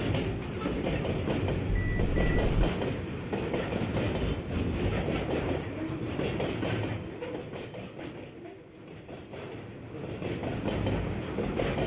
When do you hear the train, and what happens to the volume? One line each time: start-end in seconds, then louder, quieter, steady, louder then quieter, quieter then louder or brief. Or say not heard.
0.0-11.8 quieter then louder.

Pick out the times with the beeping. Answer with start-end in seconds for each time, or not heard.
1.6-2.7.